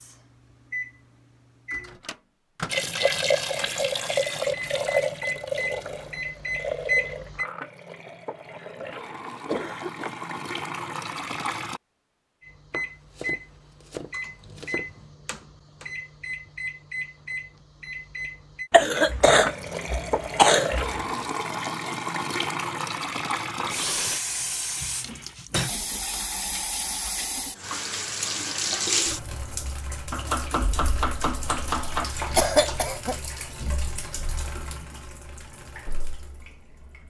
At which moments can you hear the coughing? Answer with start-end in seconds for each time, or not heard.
8.6-10.2, 18.7-20.9, 32.0-33.1.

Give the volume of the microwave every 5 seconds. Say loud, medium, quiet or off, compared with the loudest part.
medium, loud, medium, medium, off, off, off, off.